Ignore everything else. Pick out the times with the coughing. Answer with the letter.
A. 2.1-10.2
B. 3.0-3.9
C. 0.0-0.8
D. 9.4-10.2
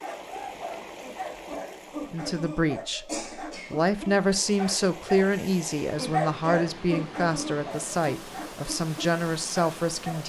B.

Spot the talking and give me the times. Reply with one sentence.
You can hear the talking from 2.1 to 10.2 s.